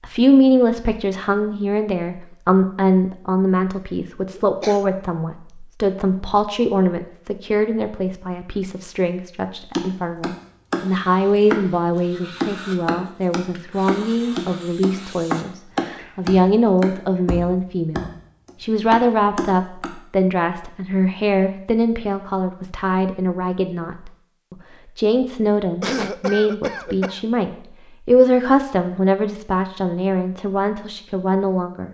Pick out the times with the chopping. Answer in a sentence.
The chopping can be heard from 9.8 to 19.9 s.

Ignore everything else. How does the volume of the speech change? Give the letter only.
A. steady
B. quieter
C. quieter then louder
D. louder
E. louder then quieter
A.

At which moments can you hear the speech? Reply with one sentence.
You can hear the speech from 0.0 to 31.9 s.